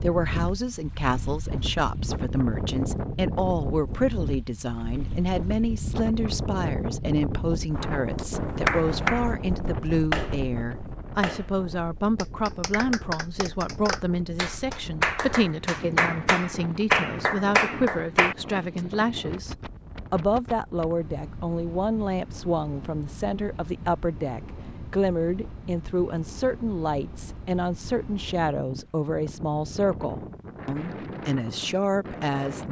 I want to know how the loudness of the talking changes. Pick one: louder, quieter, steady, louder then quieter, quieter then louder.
steady.